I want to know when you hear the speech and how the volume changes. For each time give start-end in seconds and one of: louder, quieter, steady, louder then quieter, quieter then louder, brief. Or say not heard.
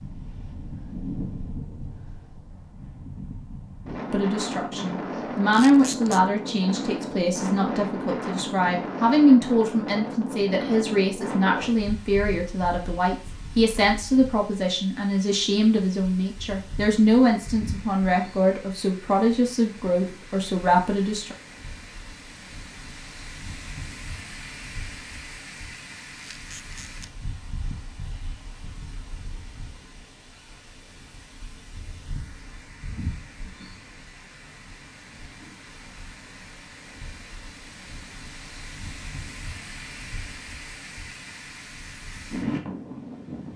4.1-21.4 steady.